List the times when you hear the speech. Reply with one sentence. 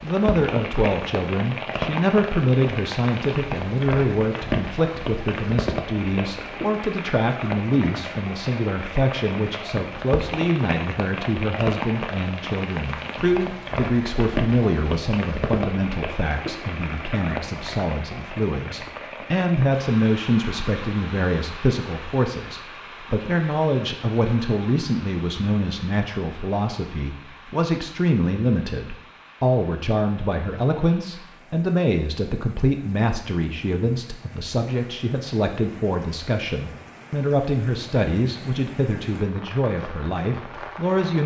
The speech can be heard from 0.0 to 41.2 s.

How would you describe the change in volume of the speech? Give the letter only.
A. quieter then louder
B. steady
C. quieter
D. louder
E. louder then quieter
B.